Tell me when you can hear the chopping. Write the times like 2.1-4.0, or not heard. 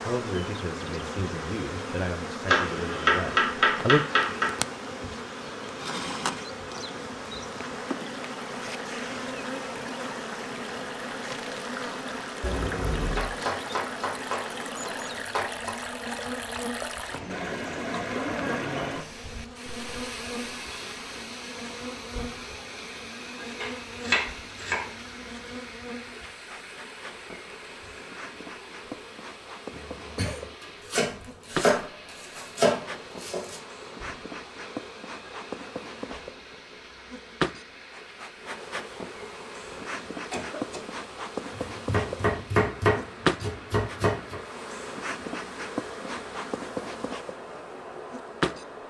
2.5-4.5, 13.1-15.8, 23.6-24.9, 30.6-33.6, 41.5-44.4.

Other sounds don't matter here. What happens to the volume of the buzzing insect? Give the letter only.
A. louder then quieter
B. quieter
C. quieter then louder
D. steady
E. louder
C.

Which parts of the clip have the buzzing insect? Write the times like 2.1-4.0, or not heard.
0.0-48.8.